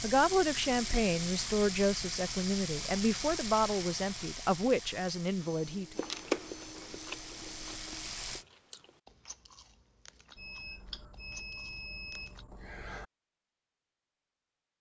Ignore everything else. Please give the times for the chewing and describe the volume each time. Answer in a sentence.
You can hear the chewing from 6.0 to 12.4 s, getting quieter then louder.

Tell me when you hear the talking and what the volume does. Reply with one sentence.
The talking can be heard from 0.0 to 6.0 s, at a steady volume.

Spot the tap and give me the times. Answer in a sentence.
You can hear the tap from 0.0 to 8.4 s.